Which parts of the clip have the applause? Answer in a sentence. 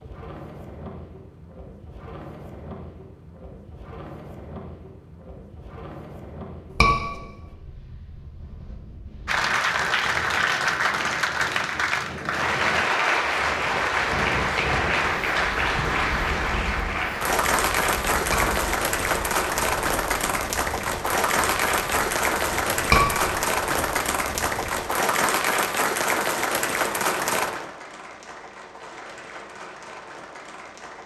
You can hear the applause from 9.2 to 31.0 s.